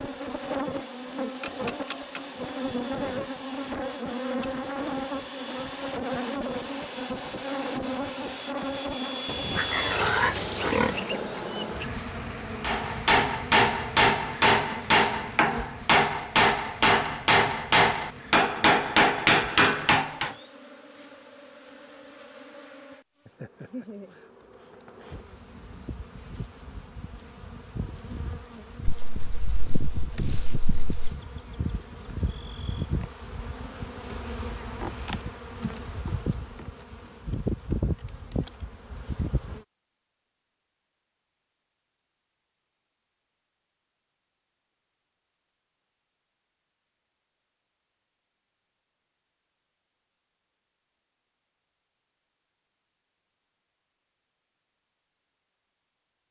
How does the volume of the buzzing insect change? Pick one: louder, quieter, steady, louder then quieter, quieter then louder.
quieter then louder.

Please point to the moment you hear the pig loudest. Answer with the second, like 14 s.
10 s.